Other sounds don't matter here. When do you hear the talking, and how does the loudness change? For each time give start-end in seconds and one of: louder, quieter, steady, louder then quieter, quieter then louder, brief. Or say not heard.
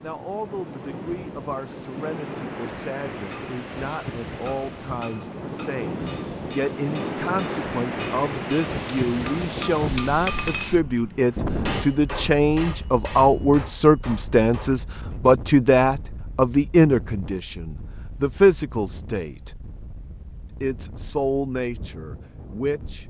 0.0-19.5 louder
20.6-23.0 brief.